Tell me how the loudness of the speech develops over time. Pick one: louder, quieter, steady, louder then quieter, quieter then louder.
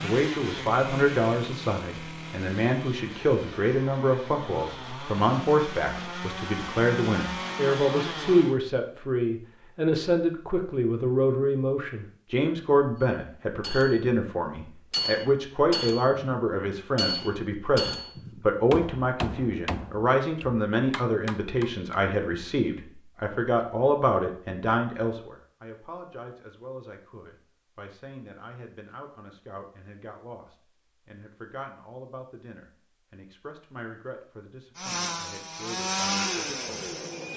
quieter.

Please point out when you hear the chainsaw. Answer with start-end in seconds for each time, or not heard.
0.0-8.6, 34.8-37.3.